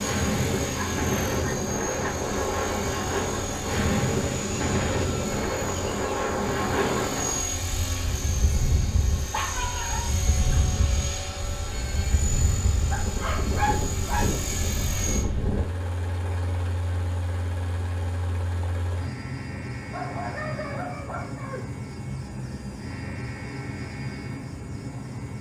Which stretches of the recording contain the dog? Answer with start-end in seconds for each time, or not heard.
0.8-2.1, 9.2-10.7, 12.8-14.3, 19.9-21.6.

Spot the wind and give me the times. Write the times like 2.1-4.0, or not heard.
0.0-15.7.